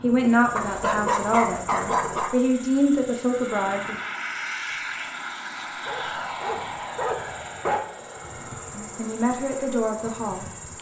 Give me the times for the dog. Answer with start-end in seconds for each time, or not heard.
0.6-2.4, 5.8-7.8.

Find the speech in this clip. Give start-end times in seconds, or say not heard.
0.0-4.0, 8.8-10.4.